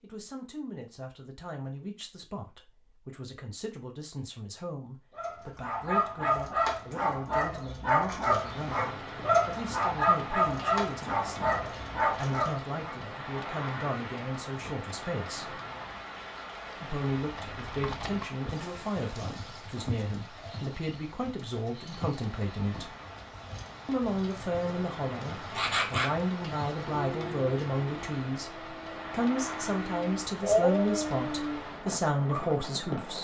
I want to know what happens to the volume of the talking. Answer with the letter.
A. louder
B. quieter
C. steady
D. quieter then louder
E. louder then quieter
A.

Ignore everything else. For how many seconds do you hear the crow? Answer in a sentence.
The crow can't be heard in this clip.